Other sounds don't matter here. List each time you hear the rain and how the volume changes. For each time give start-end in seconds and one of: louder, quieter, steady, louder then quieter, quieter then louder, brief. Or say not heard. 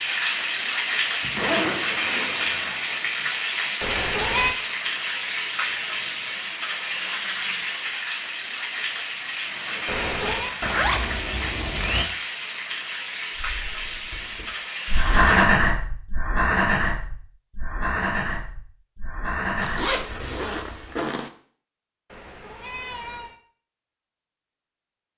0.0-15.4 quieter.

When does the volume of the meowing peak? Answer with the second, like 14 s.
4 s.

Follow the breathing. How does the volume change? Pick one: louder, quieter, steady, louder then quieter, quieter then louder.
louder then quieter.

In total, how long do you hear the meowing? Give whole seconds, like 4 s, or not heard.
3 s.